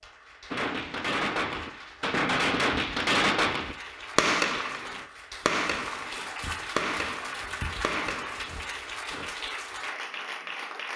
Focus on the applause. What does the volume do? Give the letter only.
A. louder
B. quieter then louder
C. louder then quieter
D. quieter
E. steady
A.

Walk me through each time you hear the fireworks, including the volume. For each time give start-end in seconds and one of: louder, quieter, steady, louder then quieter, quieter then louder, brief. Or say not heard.
0.5-9.3 quieter.